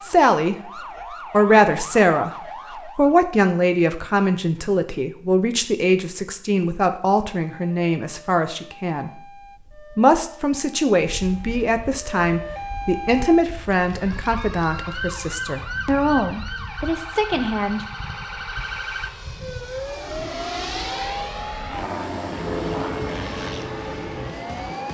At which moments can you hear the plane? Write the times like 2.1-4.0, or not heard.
11.2-24.9.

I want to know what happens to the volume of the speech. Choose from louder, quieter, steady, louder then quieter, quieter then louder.
quieter.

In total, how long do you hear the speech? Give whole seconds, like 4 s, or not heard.
17 s.